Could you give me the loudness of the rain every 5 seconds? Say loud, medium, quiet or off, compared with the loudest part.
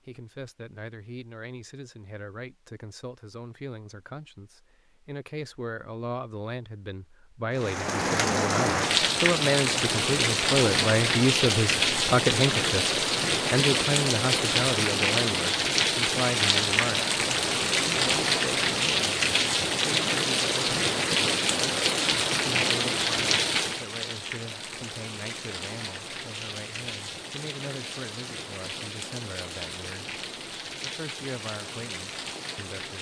off, loud, loud, loud, loud, quiet, quiet.